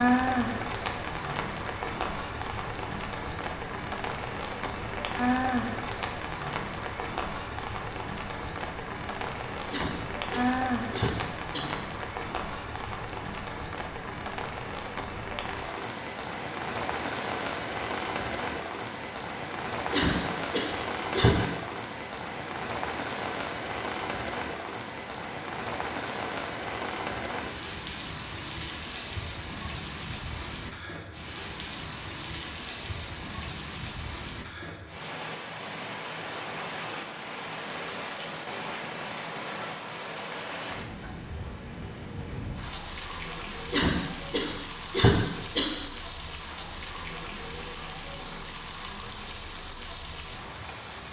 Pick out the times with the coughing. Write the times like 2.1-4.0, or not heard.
9.7-11.7, 19.9-21.4, 43.7-45.7.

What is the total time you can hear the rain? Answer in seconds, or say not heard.
51 s.